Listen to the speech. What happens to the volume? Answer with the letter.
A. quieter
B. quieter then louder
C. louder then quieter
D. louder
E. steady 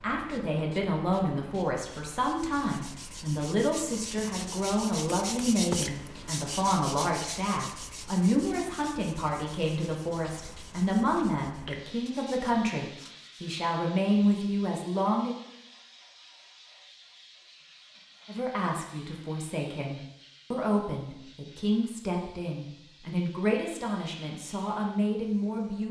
E.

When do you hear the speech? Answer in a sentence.
The speech can be heard from 0.0 to 15.3 s and from 18.2 to 25.8 s.